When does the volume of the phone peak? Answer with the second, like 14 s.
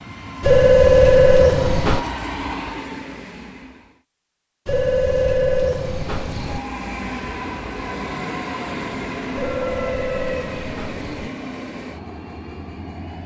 1 s.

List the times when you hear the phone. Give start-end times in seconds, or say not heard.
0.4-2.0, 4.7-6.6, 9.3-11.3.